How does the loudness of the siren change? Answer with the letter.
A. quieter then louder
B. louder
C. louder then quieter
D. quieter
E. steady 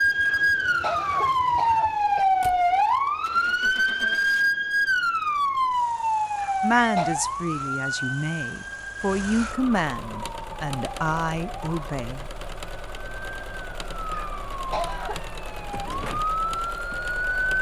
A.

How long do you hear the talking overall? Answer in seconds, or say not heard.
6 s.